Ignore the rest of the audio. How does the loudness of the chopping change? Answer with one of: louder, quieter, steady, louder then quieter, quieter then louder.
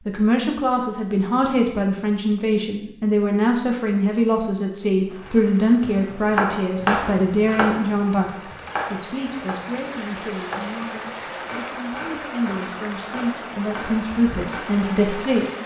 quieter.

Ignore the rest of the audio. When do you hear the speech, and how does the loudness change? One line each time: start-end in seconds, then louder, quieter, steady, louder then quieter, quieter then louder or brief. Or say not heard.
0.1-15.4 quieter then louder.